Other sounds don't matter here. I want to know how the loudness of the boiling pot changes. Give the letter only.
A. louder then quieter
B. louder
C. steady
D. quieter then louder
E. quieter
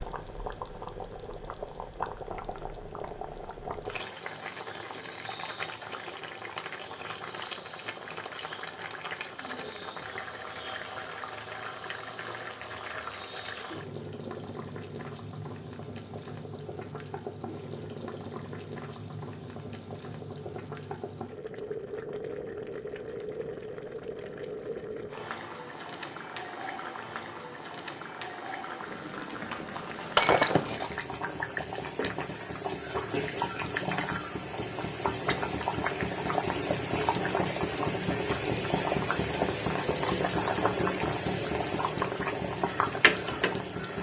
B.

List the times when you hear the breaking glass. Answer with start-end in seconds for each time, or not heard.
30.1-31.1.